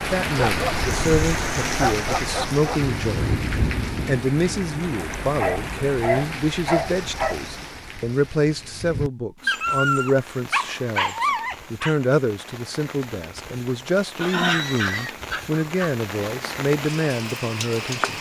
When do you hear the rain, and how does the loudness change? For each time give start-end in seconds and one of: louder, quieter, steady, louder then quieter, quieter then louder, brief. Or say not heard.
0.0-18.1 quieter then louder.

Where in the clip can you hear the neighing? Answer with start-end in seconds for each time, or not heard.
14.2-15.2.